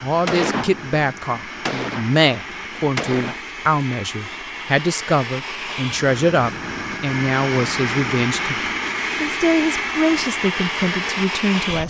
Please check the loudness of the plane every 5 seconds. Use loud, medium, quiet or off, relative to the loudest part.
medium, loud, loud.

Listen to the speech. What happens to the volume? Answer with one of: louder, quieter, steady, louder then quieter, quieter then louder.
steady.